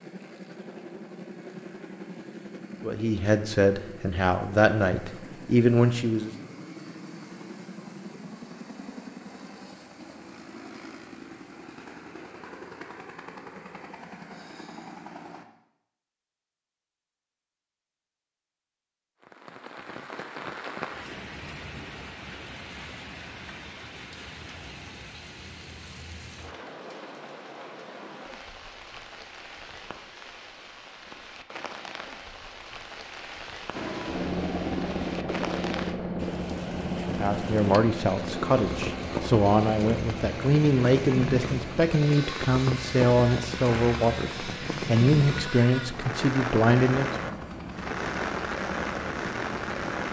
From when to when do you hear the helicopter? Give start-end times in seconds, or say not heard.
0.0-15.4, 33.7-50.0.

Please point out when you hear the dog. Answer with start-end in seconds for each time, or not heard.
not heard.